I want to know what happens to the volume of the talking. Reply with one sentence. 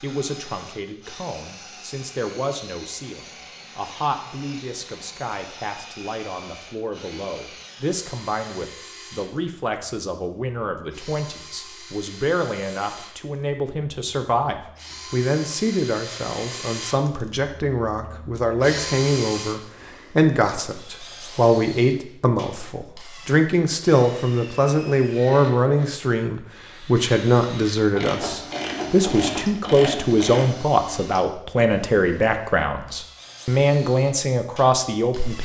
The loudness of the talking goes up.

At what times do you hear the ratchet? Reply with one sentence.
The ratchet can be heard from 27.9 to 30.5 s.